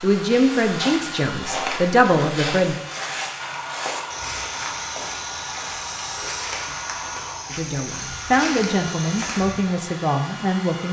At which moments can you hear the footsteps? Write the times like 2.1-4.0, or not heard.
0.2-9.6.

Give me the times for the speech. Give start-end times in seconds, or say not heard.
0.0-2.8, 7.5-10.8.